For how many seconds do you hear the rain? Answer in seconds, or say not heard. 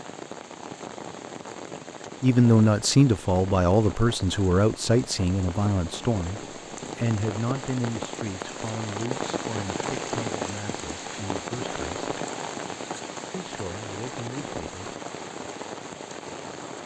17 s.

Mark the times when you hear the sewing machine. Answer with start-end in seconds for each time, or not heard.
not heard.